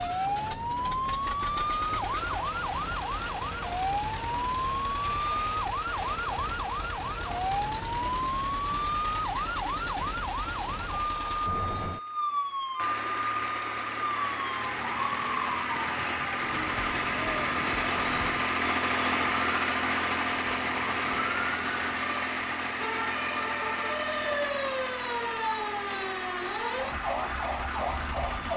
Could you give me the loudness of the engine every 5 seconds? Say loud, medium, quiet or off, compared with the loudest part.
medium, medium, medium, loud, loud, medium.